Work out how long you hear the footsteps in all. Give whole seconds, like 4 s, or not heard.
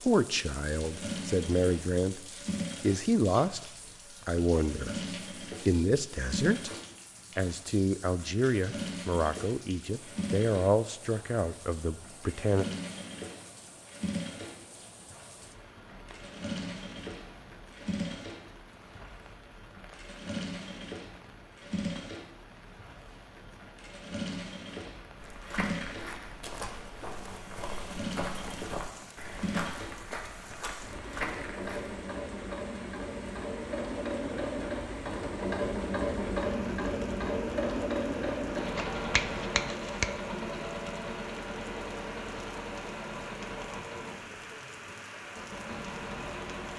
7 s.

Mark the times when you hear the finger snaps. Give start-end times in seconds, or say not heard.
38.8-40.1.